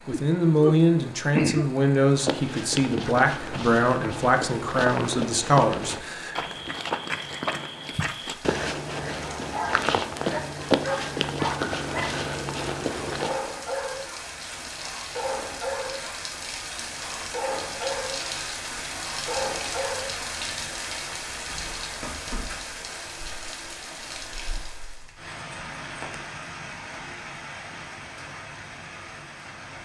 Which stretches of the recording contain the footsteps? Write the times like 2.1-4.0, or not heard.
2.0-13.3.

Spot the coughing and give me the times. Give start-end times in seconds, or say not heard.
0.1-1.7.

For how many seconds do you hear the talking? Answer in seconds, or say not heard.
6 s.